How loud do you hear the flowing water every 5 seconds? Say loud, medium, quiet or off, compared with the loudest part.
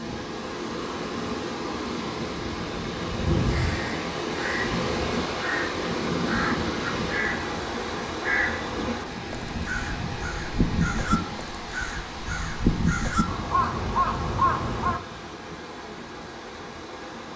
loud, loud, medium, medium.